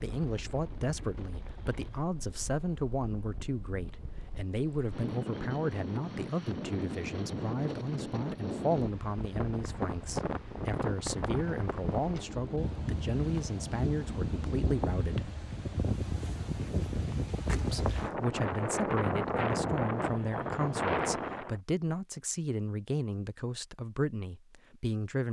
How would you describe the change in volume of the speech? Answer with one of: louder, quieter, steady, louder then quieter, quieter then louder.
steady.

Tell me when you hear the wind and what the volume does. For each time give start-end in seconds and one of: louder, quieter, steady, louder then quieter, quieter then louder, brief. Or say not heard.
0.0-21.6 louder.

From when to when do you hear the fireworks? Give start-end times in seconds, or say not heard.
not heard.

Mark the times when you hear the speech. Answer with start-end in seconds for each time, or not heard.
0.0-15.3, 17.6-25.2.